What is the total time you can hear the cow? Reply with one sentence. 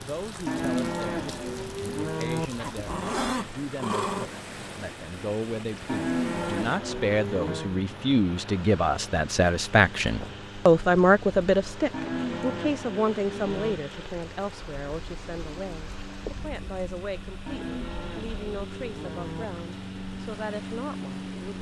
You can hear the cow for 8 seconds altogether.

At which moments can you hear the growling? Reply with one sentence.
You can hear the growling from 2.5 to 4.3 s.